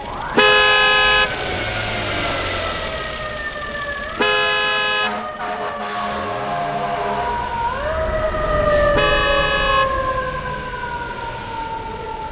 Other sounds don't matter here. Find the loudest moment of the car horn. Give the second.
1 s.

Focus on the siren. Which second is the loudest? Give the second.
9 s.